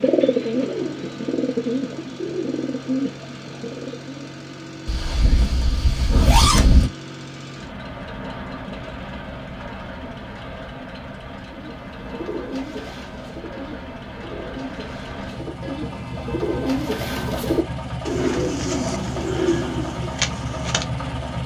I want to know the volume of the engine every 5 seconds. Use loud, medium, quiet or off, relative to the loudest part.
medium, medium, medium, loud, loud.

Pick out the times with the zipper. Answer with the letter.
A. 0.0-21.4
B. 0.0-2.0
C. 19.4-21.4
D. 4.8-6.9
D.